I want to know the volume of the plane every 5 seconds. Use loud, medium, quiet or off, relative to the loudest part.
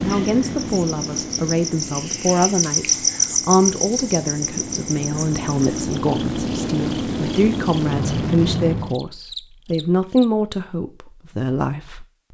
medium, loud, off.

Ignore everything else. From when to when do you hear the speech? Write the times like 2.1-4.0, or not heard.
0.0-12.1.